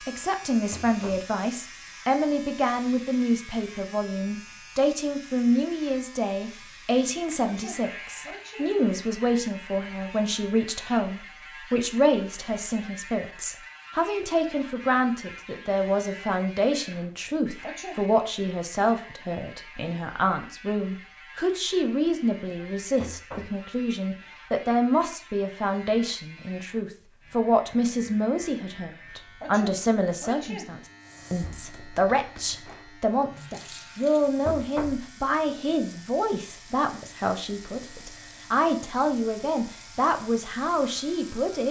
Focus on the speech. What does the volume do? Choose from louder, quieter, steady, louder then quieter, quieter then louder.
steady.